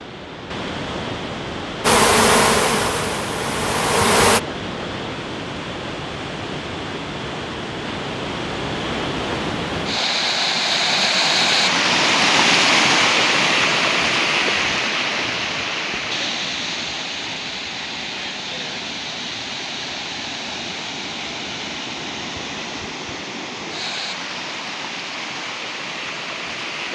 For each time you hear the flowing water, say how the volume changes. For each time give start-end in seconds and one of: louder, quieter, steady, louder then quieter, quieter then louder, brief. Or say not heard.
0.0-26.9 louder then quieter.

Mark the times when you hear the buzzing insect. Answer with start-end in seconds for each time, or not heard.
1.8-4.4.